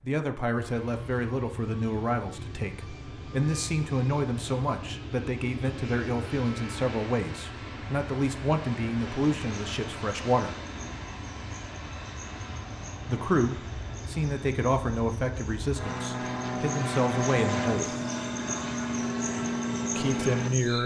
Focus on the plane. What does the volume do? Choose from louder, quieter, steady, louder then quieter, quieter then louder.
louder.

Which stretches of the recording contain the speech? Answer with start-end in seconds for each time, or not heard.
0.0-10.6, 13.1-17.9, 19.9-20.8.